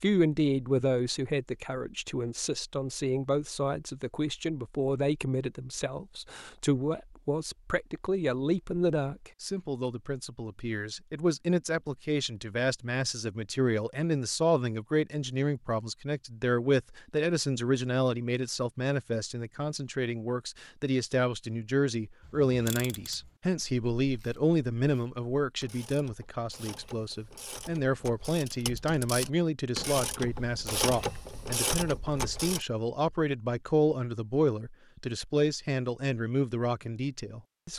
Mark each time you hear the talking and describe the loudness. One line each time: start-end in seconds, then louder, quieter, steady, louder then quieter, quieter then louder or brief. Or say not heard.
0.0-37.7 steady.